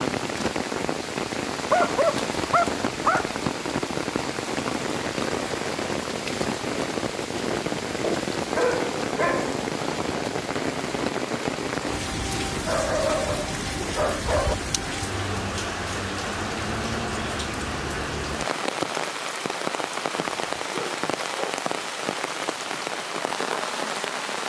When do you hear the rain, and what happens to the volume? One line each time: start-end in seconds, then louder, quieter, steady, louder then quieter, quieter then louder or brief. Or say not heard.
0.0-24.4 steady.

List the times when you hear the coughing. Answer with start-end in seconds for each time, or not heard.
not heard.